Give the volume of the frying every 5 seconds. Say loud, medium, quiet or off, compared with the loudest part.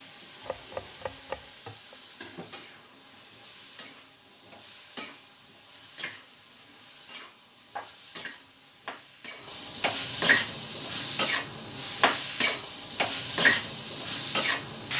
quiet, quiet, loud.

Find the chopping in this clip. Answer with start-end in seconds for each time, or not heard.
0.5-1.9.